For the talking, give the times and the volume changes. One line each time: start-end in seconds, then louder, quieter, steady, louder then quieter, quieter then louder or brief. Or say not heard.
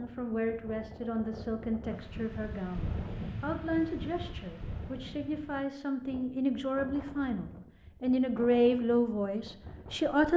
0.0-10.3 louder.